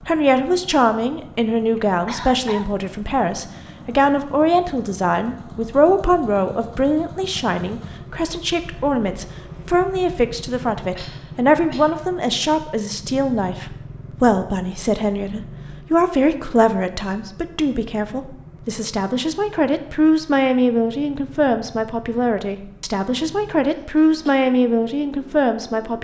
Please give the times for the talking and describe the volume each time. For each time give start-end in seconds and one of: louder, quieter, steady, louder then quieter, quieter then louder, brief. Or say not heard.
0.0-25.9 steady.